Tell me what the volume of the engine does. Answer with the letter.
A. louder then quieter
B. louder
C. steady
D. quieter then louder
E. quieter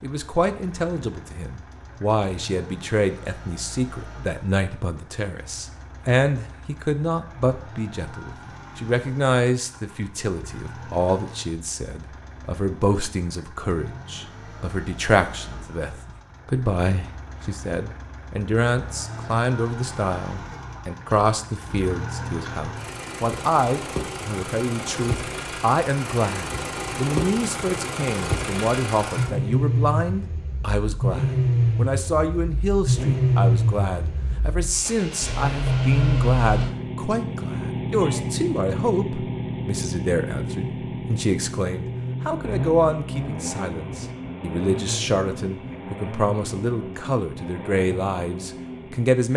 A.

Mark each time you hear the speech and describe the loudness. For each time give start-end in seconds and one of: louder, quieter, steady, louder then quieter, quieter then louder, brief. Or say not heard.
0.0-49.3 steady.